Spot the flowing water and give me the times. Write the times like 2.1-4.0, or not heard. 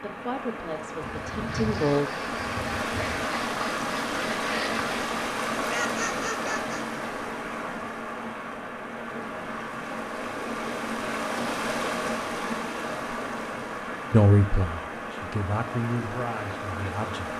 0.0-17.3.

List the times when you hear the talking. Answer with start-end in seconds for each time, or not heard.
0.0-2.1, 14.1-17.3.